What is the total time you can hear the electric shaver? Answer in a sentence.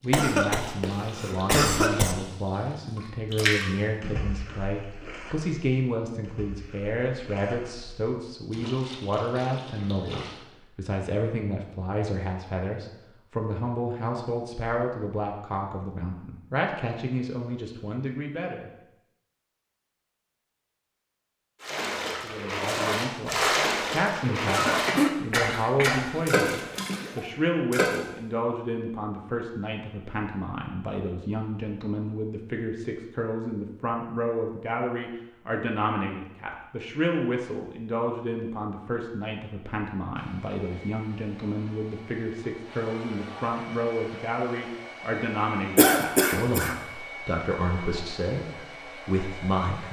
You can't hear the electric shaver here.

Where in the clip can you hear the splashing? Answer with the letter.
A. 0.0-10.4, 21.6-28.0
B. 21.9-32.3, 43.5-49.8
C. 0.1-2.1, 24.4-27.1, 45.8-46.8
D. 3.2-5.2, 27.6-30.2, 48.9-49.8
A.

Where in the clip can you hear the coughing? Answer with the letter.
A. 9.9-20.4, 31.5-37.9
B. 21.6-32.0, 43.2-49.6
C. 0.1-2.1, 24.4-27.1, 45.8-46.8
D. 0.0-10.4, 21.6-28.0
C.